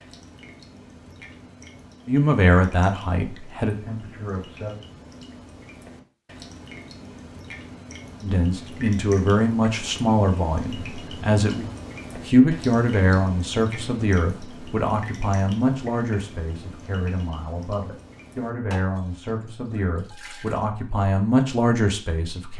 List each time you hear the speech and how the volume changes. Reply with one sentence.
The speech can be heard briefly from 2.0 to 4.8 s; and from 8.2 to 22.5 s, getting quieter then louder.